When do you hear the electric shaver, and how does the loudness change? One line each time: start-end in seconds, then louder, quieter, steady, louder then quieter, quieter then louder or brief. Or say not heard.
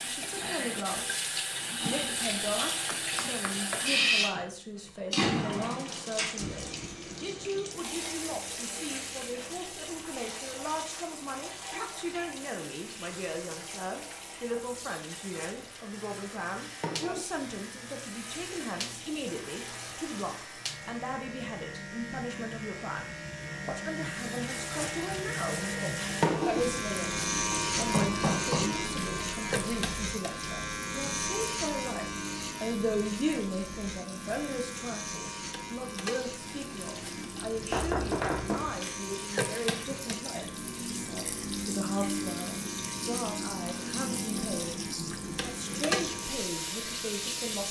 15.6-47.6 louder then quieter.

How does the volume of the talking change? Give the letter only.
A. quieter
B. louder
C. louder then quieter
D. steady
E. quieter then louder
D.